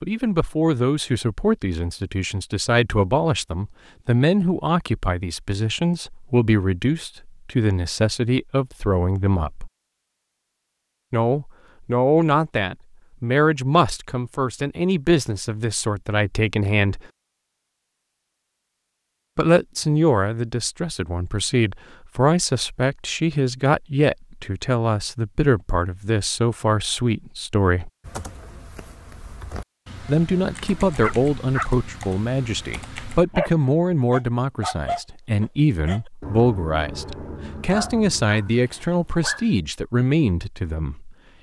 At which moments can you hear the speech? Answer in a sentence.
You can hear the speech from 0.0 to 9.7 s, from 11.1 to 17.0 s, from 19.4 to 27.9 s and from 30.1 to 41.1 s.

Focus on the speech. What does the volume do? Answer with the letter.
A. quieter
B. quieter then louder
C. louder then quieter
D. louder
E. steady
E.